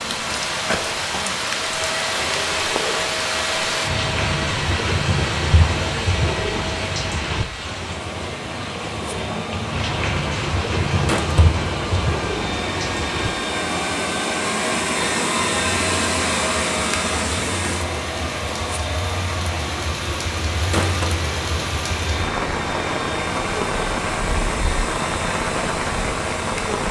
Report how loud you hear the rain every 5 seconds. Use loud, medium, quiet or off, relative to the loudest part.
loud, loud, loud, medium, loud, loud.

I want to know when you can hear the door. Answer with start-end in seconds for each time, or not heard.
not heard.